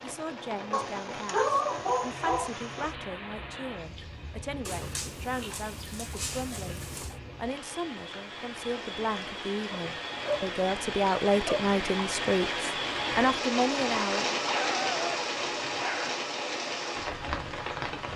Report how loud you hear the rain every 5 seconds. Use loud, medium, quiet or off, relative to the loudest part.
medium, medium, loud, loud.